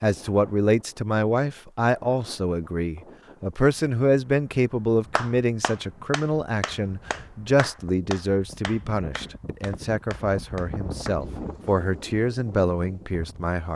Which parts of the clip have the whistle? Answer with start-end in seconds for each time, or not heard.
not heard.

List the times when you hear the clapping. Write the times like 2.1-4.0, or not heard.
5.2-11.2.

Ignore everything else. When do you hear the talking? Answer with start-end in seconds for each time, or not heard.
0.0-13.7.